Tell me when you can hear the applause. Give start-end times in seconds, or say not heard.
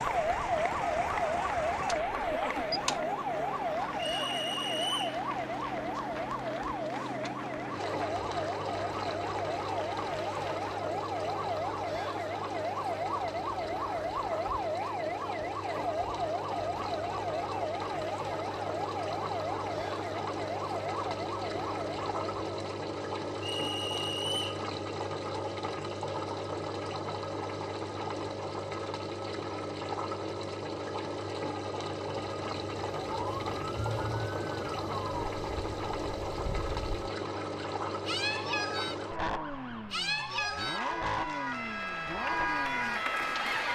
0.0-10.7, 40.2-43.6.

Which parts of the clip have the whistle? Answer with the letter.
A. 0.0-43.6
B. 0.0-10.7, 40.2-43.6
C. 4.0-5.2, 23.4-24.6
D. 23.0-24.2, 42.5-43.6
C.